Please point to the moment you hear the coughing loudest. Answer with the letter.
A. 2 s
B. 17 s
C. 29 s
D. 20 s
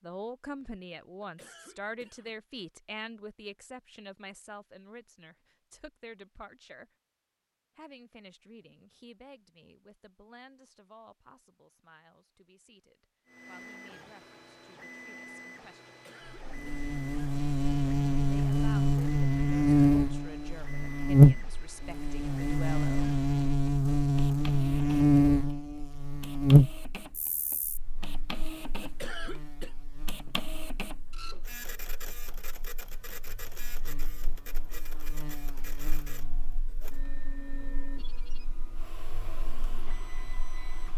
C.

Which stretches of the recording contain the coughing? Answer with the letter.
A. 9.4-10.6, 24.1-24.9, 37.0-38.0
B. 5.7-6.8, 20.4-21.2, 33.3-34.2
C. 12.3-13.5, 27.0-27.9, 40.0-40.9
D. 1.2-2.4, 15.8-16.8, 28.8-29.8
D.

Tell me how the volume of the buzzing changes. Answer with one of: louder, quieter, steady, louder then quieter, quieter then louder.
quieter.